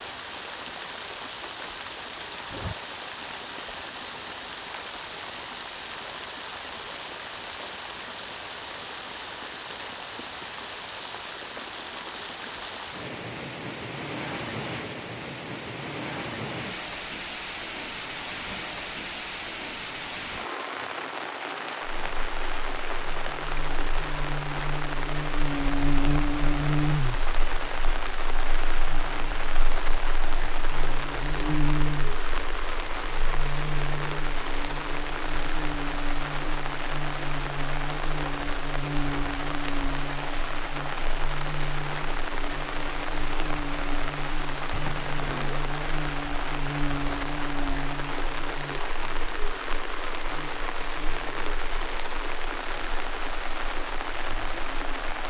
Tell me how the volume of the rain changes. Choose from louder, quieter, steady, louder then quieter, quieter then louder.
steady.